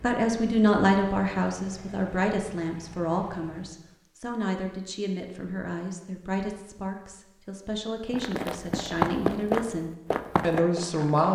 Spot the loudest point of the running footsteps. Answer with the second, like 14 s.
9 s.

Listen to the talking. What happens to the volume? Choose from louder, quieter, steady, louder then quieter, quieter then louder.
quieter then louder.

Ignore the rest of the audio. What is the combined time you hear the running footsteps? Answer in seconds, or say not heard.
3 s.